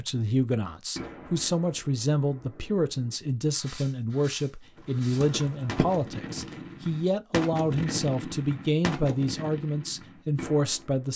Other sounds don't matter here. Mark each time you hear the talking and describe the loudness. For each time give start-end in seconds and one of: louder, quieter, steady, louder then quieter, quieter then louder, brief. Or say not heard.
0.0-11.1 steady.